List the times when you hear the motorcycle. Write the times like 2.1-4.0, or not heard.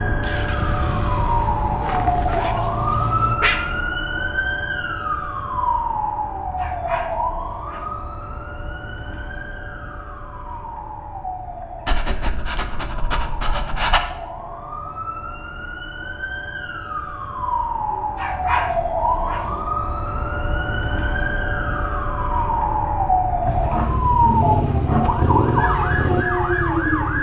0.0-3.4, 23.4-27.1.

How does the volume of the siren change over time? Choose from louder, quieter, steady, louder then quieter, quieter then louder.
quieter then louder.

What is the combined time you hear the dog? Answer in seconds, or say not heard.
8 s.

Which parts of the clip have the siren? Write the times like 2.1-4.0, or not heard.
0.0-27.1.